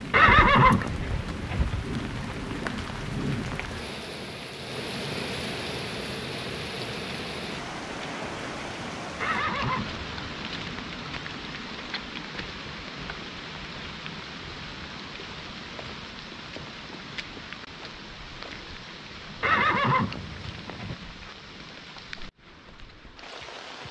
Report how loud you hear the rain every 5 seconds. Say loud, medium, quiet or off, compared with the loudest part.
loud, loud, loud, medium, medium.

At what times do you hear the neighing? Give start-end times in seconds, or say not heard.
0.1-1.6, 9.2-10.8, 19.4-20.9.